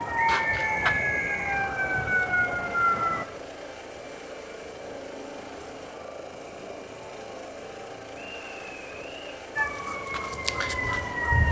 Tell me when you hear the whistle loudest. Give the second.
1 s.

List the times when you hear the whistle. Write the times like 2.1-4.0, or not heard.
0.2-1.6, 8.2-9.4.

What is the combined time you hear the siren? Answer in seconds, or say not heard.
5 s.